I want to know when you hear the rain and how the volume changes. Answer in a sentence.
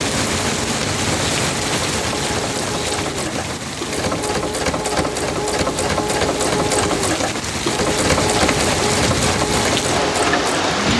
You can hear the rain from 0.0 to 10.9 s, getting quieter then louder.